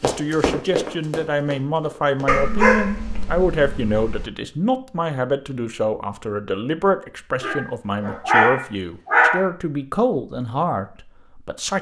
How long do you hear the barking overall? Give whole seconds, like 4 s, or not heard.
4 s.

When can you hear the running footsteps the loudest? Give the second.
1 s.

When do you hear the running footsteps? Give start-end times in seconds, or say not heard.
0.0-2.4.